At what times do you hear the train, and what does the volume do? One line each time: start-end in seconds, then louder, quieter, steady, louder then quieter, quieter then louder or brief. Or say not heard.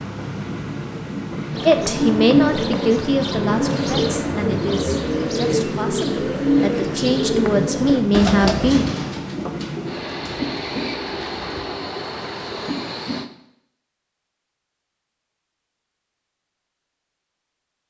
0.0-13.3 steady.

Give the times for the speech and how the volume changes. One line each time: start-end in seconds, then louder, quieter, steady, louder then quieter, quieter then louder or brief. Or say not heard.
1.6-8.8 quieter then louder.